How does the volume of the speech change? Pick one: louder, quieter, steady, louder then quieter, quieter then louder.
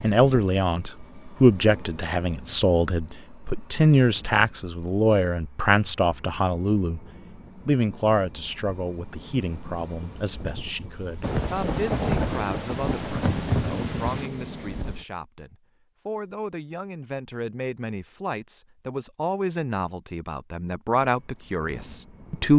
quieter then louder.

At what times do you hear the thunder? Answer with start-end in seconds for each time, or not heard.
11.2-14.3.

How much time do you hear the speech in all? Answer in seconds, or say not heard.
22 s.